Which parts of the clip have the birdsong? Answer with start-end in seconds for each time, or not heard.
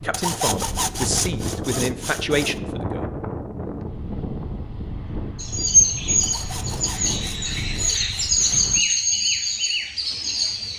5.3-10.7.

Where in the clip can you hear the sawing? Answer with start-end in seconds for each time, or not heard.
0.1-2.5, 6.2-8.4.